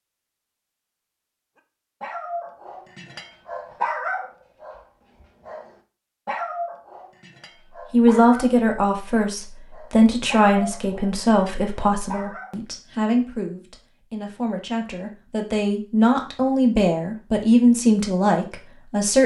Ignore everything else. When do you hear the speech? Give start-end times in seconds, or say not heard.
7.9-19.2.